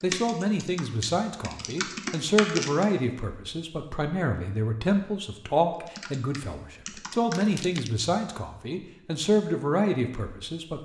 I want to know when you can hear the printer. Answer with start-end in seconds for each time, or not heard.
not heard.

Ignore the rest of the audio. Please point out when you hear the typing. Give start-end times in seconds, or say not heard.
0.0-2.9, 5.8-7.4.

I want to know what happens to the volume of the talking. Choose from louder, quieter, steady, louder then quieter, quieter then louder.
steady.